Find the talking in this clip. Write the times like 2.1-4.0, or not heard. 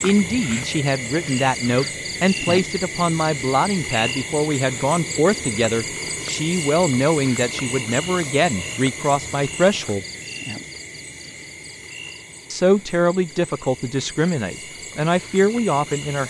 0.0-10.1, 12.5-16.2.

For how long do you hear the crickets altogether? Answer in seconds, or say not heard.
16 s.